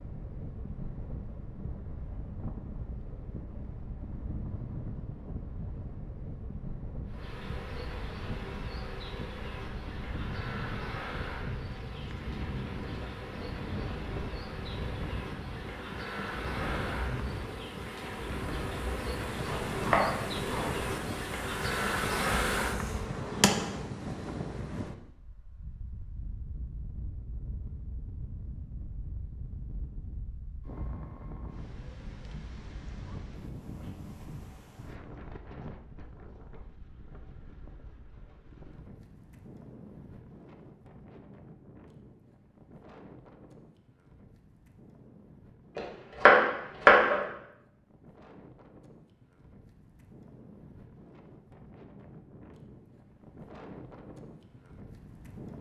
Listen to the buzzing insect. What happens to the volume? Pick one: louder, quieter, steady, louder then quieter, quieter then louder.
louder.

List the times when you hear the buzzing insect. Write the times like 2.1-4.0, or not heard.
7.0-23.9.